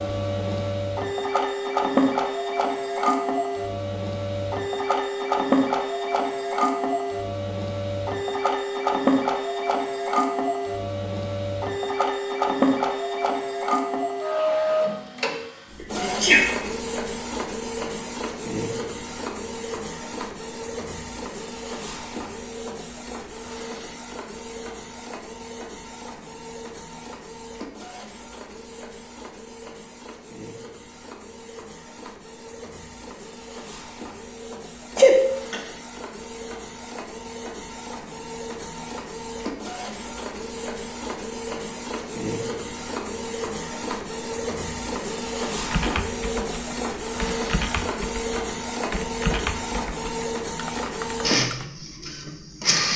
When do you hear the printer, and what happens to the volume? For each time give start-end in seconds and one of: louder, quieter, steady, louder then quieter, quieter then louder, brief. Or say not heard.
0.0-52.9 quieter then louder.